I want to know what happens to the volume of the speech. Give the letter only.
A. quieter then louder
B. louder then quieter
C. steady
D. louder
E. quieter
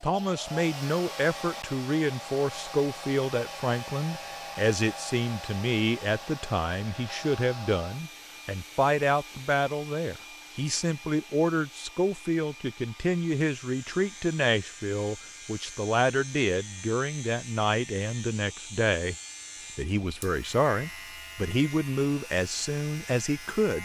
C.